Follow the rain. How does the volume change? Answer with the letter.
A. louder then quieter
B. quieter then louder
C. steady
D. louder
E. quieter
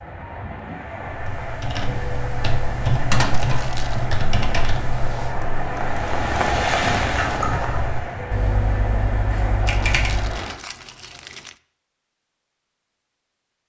A.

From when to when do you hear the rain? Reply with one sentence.
You can hear the rain from 0.0 to 10.6 s.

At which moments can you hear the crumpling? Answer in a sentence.
You can hear the crumpling from 3.4 to 4.1 s and from 9.7 to 11.6 s.